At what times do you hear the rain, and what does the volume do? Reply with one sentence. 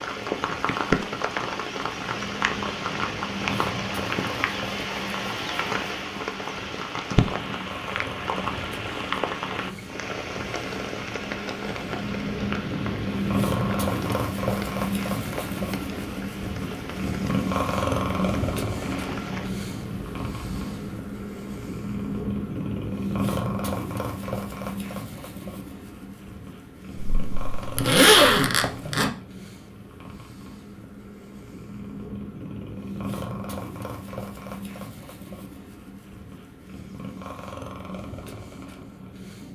The rain can be heard from 0.0 to 20.9 s, getting quieter.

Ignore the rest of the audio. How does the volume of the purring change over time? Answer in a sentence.
The loudness of the purring goes up, then down.